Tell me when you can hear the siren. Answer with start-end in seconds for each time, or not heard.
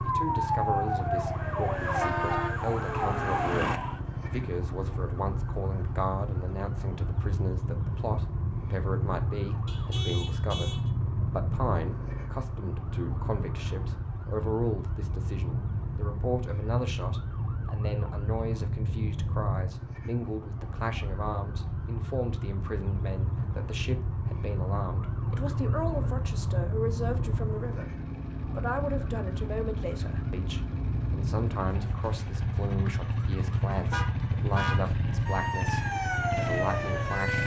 0.0-37.4.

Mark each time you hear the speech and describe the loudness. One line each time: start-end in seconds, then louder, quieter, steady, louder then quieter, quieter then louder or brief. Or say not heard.
0.0-37.4 steady.